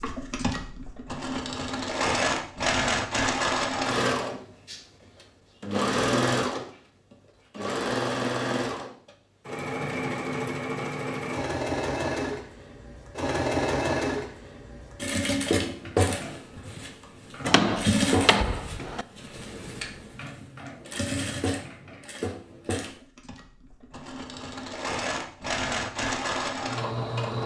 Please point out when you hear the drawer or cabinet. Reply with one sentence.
The drawer or cabinet can be heard from 17.4 to 19.1 s.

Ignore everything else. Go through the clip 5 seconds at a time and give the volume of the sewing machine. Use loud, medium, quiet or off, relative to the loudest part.
loud, loud, loud, loud, medium, loud.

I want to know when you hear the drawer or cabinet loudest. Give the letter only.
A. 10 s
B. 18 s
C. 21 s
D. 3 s
B.